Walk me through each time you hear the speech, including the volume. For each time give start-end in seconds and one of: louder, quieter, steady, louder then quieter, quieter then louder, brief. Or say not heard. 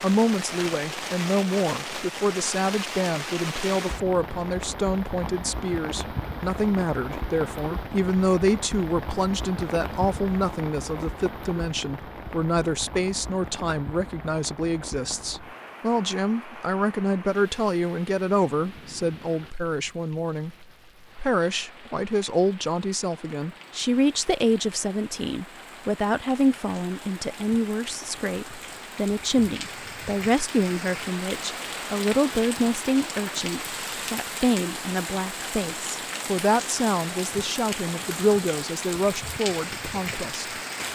0.0-40.5 steady.